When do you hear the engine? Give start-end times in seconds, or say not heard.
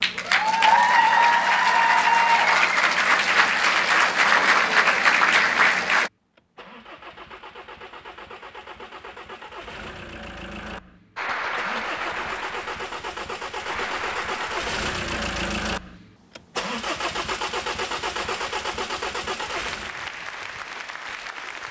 0.0-19.9.